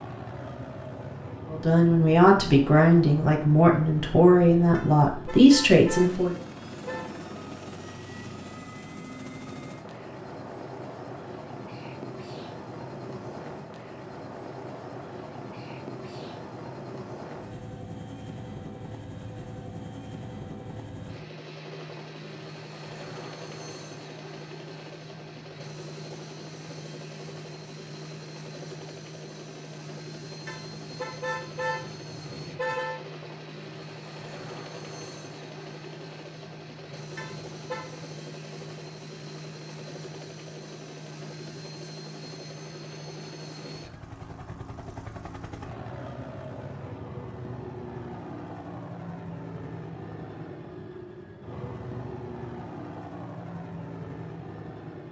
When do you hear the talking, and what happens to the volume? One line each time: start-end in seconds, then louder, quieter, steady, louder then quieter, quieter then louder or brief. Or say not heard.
1.5-6.3 steady.